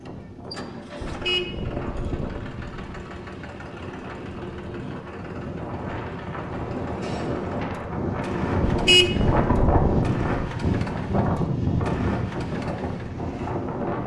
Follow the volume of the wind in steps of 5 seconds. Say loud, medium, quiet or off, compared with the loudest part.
quiet, loud, loud.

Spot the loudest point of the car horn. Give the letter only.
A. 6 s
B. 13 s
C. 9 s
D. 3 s
C.